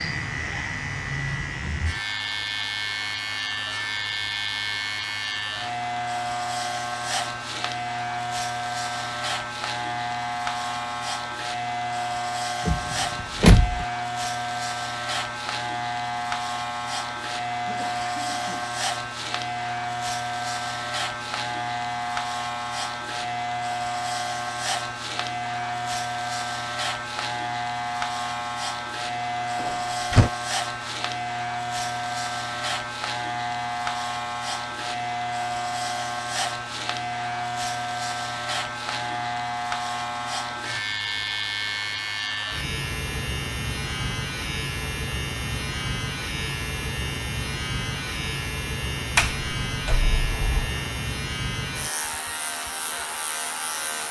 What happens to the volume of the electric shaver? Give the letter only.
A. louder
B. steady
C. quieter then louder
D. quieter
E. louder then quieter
B.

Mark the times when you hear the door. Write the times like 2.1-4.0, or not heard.
12.7-13.8, 29.6-30.3, 49.1-50.7.